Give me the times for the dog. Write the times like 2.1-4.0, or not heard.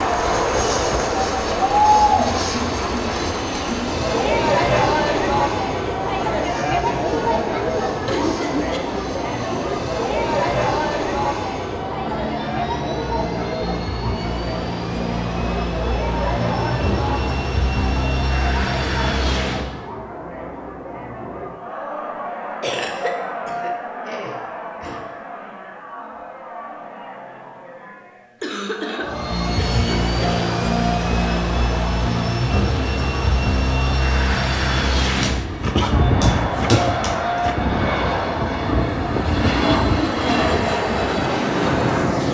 35.2-37.5.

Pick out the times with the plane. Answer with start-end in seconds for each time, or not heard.
0.0-19.9, 29.0-42.2.